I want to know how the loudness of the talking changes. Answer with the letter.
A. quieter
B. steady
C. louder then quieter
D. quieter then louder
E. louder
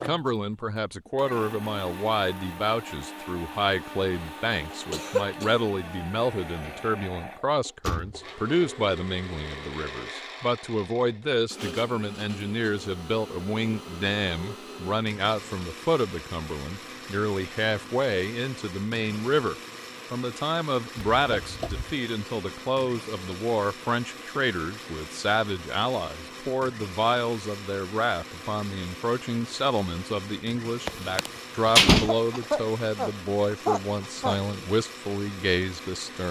B.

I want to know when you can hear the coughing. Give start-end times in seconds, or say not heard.
4.9-5.5, 31.9-34.4.